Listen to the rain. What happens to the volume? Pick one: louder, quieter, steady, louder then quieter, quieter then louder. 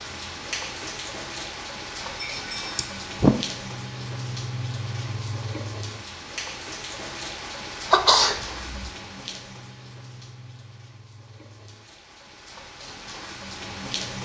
quieter.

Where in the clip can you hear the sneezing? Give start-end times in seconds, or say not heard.
2.2-3.4, 7.9-8.9.